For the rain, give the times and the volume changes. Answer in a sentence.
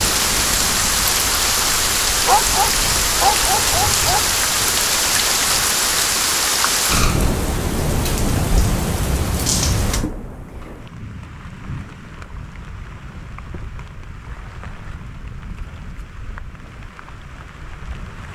The rain can be heard from 0.0 to 18.2 s, getting quieter.